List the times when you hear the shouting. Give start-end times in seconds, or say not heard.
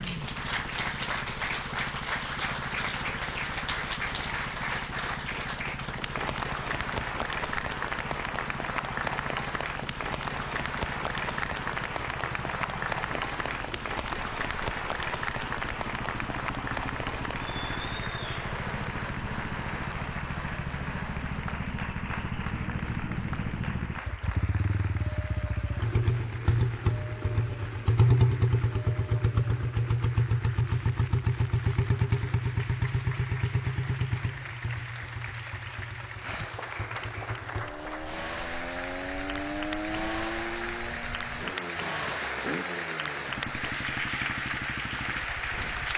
not heard.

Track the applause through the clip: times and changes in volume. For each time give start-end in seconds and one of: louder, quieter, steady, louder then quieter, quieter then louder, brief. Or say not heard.
0.0-45.9 quieter then louder.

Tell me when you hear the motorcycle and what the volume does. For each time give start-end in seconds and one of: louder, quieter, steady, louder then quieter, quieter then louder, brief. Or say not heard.
0.0-45.9 louder then quieter.